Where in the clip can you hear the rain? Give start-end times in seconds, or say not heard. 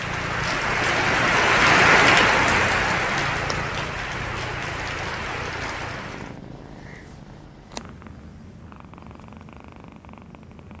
0.0-6.4.